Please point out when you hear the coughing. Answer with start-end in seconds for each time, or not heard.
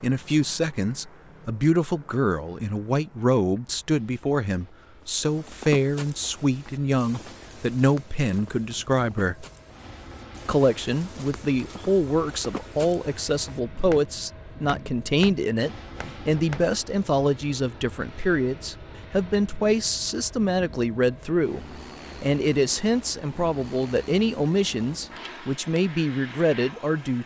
not heard.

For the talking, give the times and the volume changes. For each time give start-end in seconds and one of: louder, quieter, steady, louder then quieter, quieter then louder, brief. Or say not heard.
0.0-9.4 steady
10.4-27.2 steady.